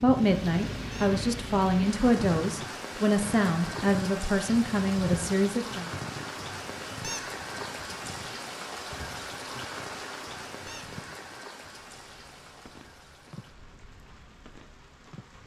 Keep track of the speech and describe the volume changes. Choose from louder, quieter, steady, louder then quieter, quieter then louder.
steady.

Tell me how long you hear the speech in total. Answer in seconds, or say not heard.
6 s.